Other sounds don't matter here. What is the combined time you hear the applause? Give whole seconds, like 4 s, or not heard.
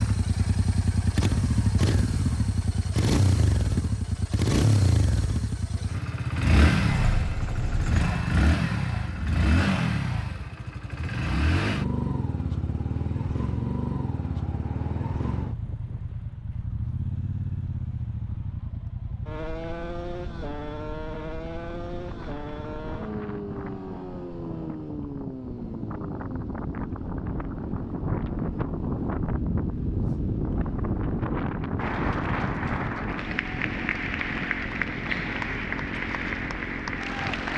6 s.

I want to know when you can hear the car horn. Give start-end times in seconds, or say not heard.
6.9-8.3.